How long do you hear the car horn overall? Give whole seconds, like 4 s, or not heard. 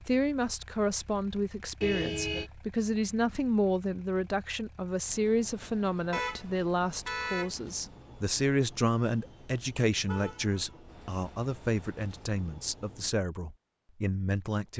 3 s.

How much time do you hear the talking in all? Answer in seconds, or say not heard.
15 s.